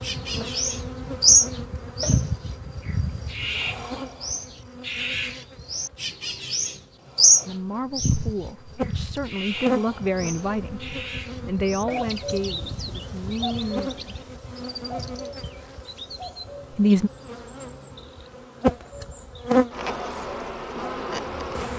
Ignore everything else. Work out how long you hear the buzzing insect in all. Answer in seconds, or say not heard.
22 s.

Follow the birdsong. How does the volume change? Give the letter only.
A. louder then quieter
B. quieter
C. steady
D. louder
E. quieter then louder
B.